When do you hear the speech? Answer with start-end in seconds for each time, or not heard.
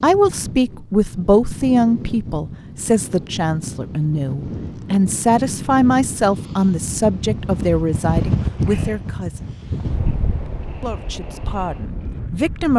0.0-9.6, 10.8-12.7.